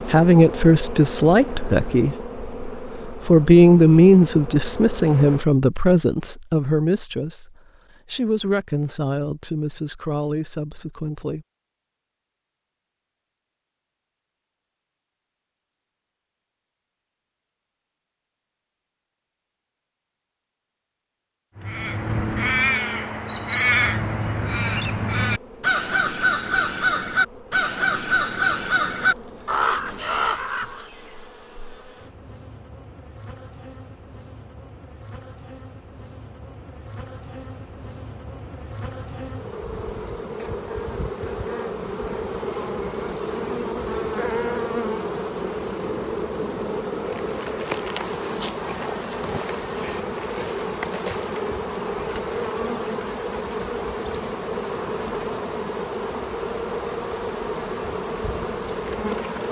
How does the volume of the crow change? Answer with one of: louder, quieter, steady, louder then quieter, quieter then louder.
steady.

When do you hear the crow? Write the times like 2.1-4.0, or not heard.
21.6-30.9.